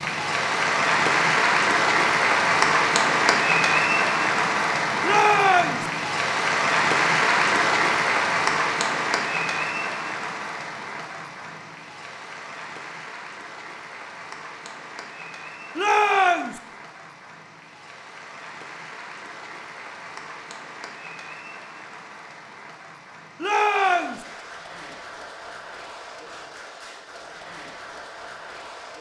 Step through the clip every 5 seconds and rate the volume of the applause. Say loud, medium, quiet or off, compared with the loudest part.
loud, loud, quiet, quiet, quiet, quiet.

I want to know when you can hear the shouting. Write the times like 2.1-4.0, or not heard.
5.0-5.8, 15.8-16.6, 23.4-24.2.